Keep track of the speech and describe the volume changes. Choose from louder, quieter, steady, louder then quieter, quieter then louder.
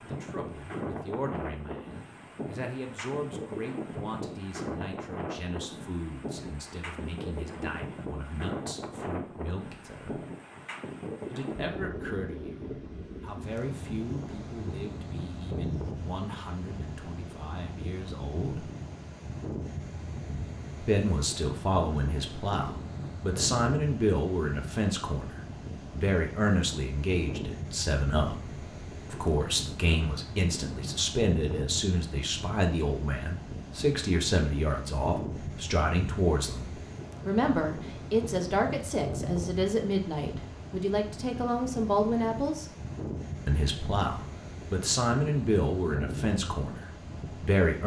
louder.